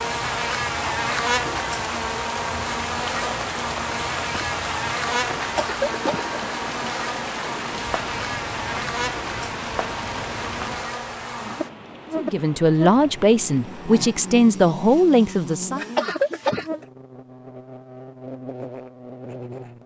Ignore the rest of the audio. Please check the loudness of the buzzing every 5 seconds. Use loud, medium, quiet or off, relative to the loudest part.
loud, loud, medium, medium.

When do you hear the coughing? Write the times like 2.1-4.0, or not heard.
5.3-6.4, 15.8-16.9.